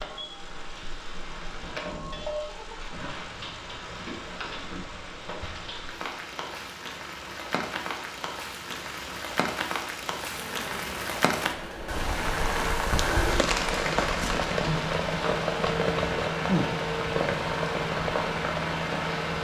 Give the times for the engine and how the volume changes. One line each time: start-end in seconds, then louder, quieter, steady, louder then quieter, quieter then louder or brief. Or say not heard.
0.0-19.3 louder.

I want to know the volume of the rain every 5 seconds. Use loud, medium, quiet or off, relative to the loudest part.
medium, medium, loud, loud.